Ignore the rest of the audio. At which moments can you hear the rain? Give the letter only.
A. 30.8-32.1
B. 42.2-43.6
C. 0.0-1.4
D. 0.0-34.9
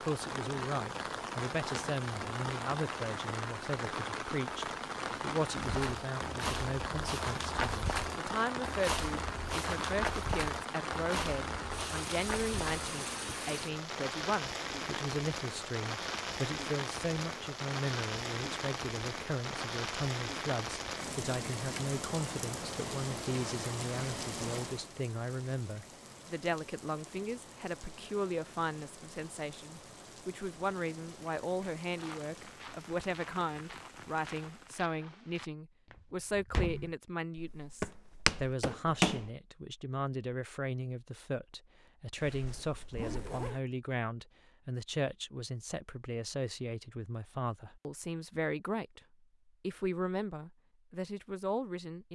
D.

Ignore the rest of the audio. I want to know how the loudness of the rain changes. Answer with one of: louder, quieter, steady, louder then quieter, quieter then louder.
quieter.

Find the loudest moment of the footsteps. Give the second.
39 s.